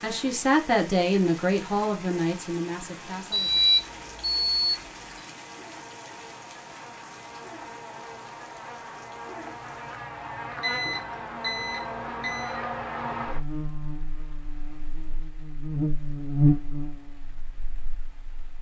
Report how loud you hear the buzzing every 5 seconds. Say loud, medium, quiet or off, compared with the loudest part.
quiet, quiet, medium, loud.